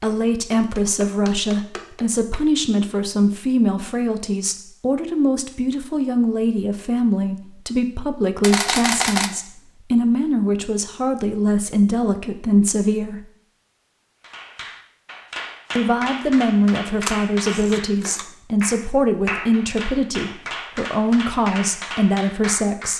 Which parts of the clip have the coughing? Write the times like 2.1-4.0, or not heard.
not heard.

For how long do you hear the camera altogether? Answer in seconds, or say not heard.
2 s.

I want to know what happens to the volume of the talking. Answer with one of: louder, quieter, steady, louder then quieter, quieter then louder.
steady.